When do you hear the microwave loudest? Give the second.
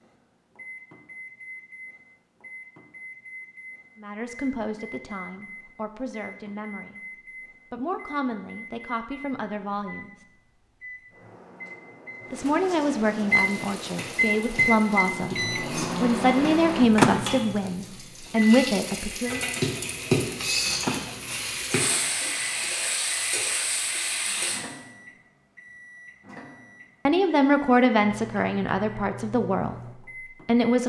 17 s.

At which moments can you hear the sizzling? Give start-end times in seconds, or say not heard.
13.2-24.6.